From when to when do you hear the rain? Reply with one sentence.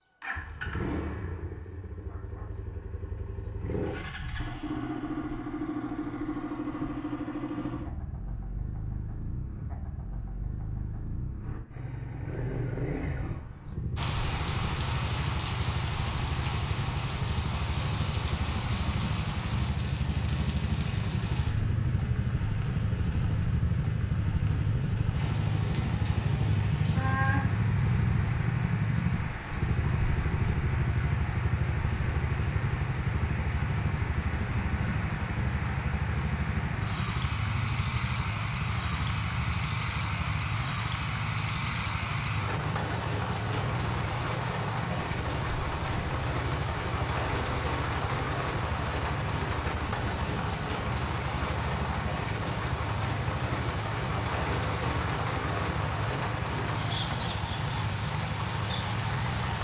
You can hear the rain from 13.9 to 59.5 s.